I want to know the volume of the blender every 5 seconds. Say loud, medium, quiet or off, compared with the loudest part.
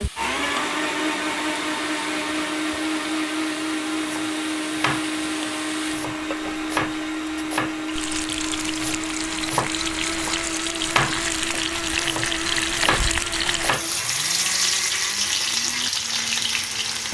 loud, loud, medium, medium.